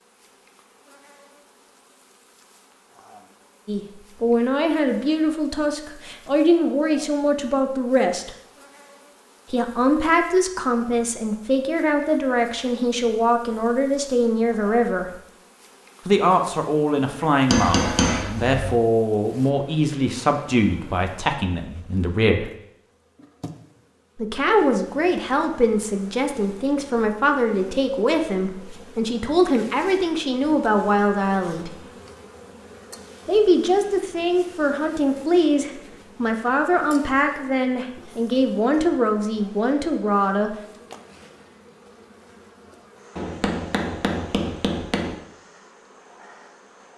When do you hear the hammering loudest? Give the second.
18 s.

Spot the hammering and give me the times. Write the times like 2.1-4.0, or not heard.
17.5-18.8, 43.1-45.1.